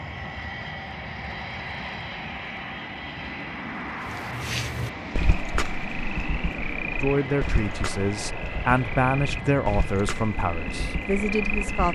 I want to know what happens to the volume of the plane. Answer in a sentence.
The loudness of the plane stays about the same.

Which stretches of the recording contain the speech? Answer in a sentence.
You can hear the speech from 7.0 to 11.8 s.